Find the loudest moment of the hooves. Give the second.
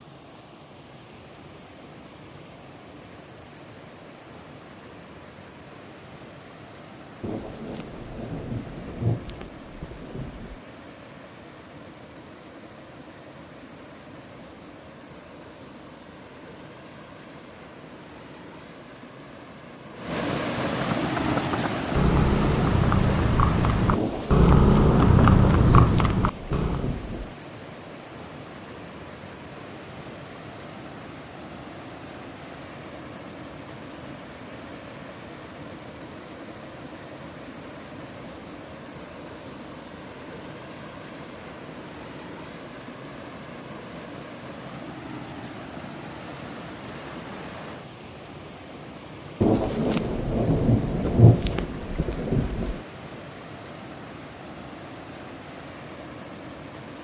25 s.